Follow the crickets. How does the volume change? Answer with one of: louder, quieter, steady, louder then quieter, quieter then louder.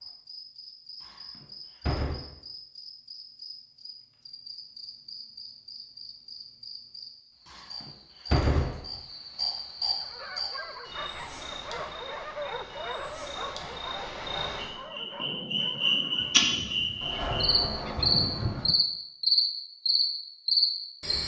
louder.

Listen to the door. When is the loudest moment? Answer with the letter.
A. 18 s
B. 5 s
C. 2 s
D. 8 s
D.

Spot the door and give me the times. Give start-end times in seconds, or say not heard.
1.0-2.2, 7.5-8.8, 17.0-18.7.